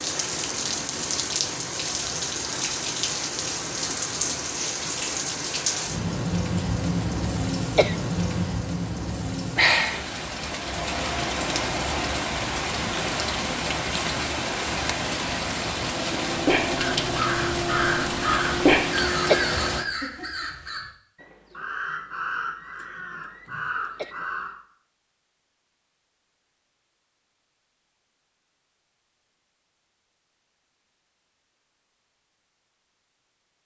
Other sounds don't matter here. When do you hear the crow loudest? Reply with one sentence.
The volume of the crow peaks at 19 seconds.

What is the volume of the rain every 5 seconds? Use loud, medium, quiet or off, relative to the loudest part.
loud, loud, loud, loud, off, off, off.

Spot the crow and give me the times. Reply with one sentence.
The crow can be heard from 16.2 to 24.6 s.